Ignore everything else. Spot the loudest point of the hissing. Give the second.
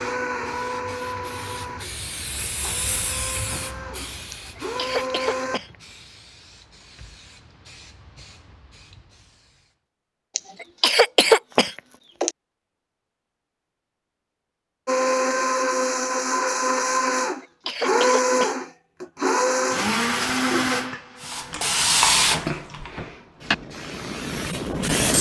22 s.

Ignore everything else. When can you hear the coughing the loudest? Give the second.
11 s.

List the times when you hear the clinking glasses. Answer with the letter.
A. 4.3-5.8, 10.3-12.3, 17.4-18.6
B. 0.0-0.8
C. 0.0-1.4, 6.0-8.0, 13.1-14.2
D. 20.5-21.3
D.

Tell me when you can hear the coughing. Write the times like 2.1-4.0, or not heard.
4.3-5.8, 10.3-12.3, 17.4-18.6.